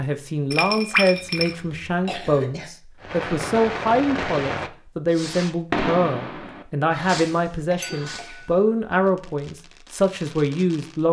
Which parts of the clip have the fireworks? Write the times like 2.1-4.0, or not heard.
3.0-11.0.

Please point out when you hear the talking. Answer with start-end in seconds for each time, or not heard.
0.0-11.0.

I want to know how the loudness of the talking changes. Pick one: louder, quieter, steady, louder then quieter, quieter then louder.
steady.